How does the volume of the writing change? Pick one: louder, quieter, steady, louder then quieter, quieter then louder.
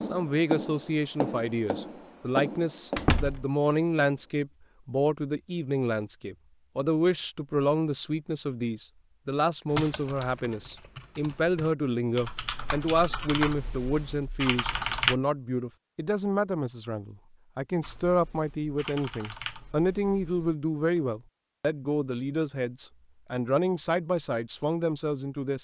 quieter.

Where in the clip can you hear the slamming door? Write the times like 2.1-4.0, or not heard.
3.0-3.5.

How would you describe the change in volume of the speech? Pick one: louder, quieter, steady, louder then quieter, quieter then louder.
steady.